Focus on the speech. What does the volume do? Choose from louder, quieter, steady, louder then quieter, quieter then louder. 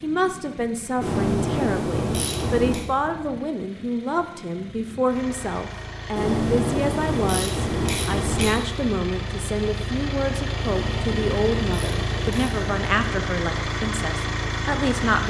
steady.